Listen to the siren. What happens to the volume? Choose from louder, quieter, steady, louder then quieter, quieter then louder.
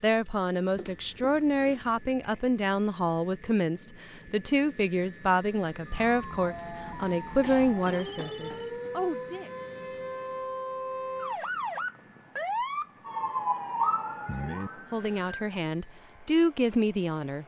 louder.